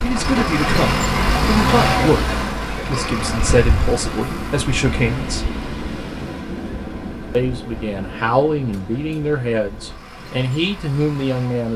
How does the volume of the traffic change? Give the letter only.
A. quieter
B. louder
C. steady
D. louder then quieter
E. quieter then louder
A.